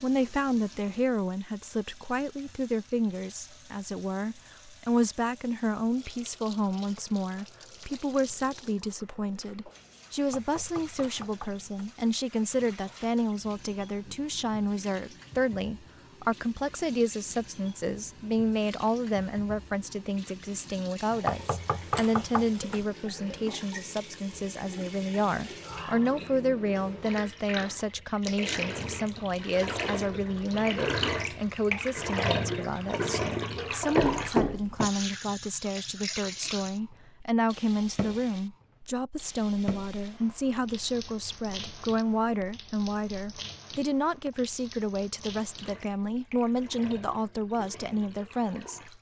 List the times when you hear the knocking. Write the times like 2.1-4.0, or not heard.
10.3-11.9, 21.2-22.9, 34.0-34.9.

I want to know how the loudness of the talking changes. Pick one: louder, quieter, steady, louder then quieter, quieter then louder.
steady.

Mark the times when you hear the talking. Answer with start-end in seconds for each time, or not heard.
0.0-48.9.